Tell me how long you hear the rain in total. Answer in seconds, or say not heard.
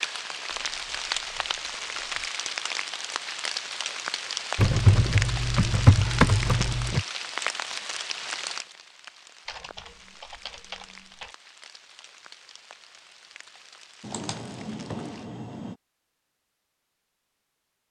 15 s.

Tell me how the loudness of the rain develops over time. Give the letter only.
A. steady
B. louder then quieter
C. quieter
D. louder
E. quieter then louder
C.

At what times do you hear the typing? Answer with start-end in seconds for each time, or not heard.
0.7-2.3, 4.5-7.0, 9.4-11.3, 14.0-15.8.